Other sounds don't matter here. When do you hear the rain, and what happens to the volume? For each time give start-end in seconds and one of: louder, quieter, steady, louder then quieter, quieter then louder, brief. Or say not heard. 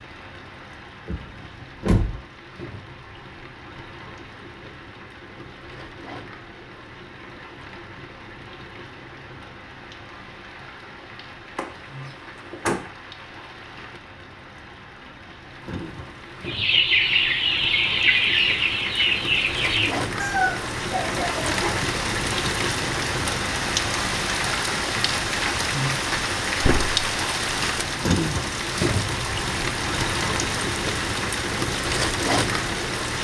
0.0-33.2 louder.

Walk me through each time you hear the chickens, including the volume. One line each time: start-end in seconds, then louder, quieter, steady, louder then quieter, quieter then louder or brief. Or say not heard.
16.4-21.9 quieter.